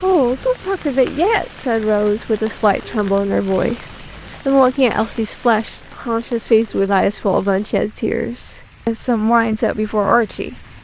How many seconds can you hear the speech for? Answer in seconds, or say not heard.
11 s.